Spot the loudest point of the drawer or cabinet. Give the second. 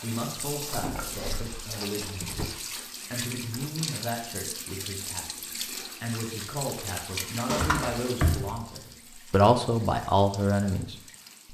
8 s.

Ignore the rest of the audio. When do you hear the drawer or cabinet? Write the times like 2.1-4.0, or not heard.
0.7-2.5, 7.5-8.7.